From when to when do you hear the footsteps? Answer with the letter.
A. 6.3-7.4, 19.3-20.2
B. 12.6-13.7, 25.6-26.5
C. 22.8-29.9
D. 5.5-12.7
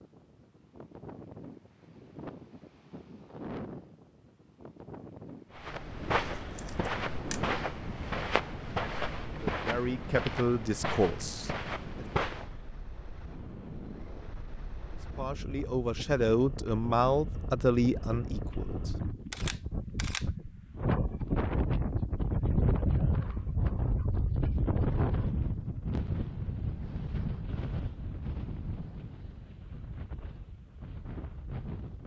D.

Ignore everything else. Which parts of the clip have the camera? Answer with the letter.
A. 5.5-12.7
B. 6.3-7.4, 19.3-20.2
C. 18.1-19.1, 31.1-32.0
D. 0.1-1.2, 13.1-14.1
B.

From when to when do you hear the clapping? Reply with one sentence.
The clapping can't be heard in this clip.